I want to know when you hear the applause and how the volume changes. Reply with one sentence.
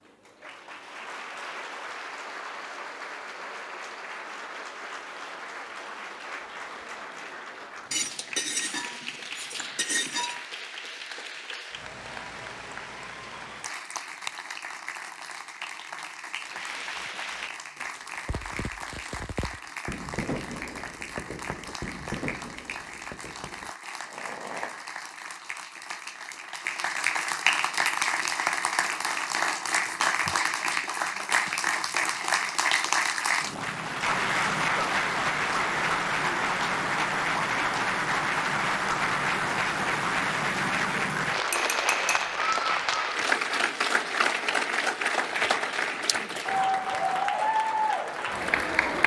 You can hear the applause from 0.0 to 49.0 s, getting louder.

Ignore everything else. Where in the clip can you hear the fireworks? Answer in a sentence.
The fireworks can be heard from 16.4 to 24.9 s.